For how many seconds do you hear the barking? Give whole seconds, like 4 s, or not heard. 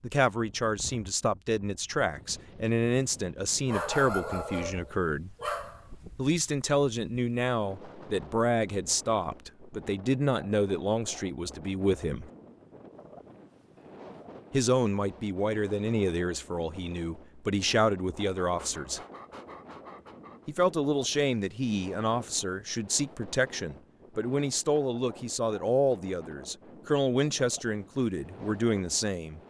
4 s.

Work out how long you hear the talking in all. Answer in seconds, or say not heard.
25 s.